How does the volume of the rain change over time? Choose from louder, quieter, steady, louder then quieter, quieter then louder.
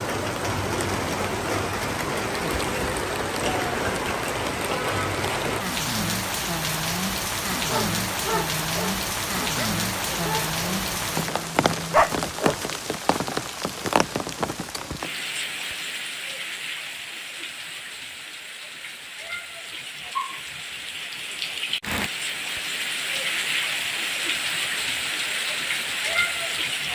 quieter then louder.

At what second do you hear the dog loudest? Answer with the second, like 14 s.
12 s.